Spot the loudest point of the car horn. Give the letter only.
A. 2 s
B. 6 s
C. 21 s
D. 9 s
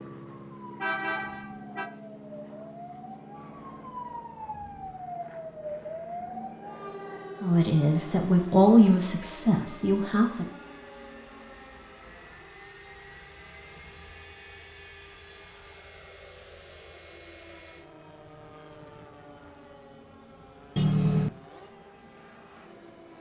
C.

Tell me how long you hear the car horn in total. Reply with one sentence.
The car horn can be heard for 2 seconds in total.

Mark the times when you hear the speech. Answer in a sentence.
The speech can be heard from 7.4 to 10.5 s.